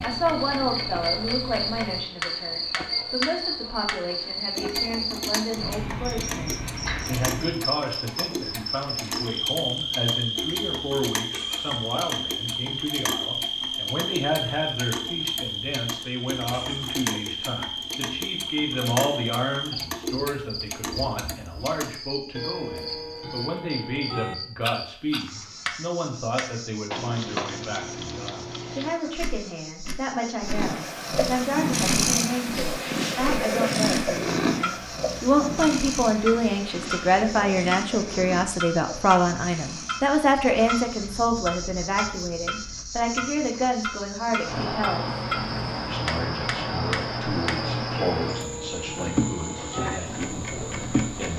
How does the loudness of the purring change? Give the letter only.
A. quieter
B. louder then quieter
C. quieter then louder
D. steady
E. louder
A.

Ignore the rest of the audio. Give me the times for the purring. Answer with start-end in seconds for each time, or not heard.
30.4-43.0.